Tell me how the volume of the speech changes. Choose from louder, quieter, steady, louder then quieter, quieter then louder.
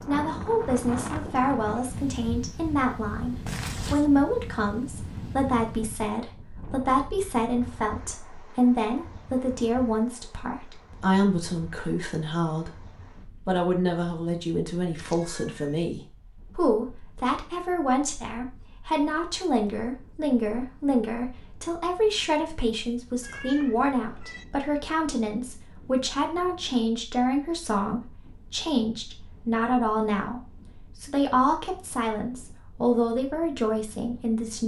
steady.